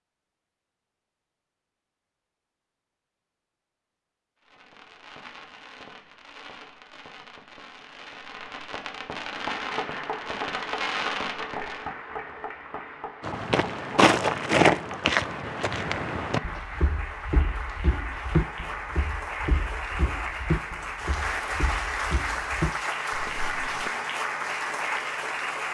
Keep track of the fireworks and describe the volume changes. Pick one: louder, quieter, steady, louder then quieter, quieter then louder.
louder.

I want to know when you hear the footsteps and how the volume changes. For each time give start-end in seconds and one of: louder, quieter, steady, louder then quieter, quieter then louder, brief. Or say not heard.
13.2-23.9 quieter.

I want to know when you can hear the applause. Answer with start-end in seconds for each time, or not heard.
9.3-25.7.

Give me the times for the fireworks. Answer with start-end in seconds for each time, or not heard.
4.4-11.9.